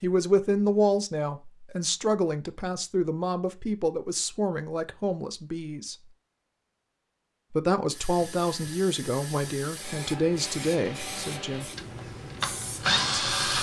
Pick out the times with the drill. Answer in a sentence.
The drill can be heard from 10.4 to 13.5 s.